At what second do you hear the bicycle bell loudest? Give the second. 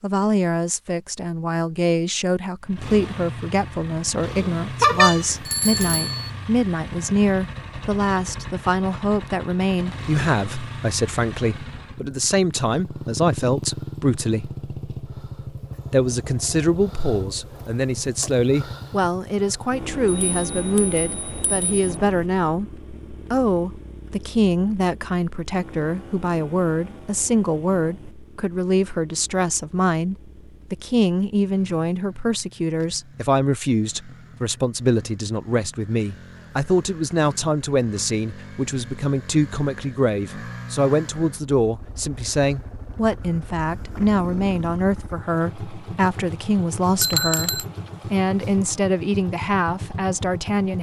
5 s.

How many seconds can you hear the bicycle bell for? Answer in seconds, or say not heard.
4 s.